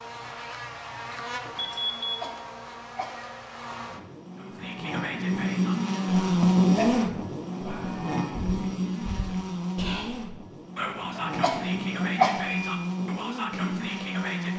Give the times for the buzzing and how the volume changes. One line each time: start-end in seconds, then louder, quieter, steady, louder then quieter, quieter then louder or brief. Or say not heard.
0.0-14.5 louder then quieter.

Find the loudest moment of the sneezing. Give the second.
12 s.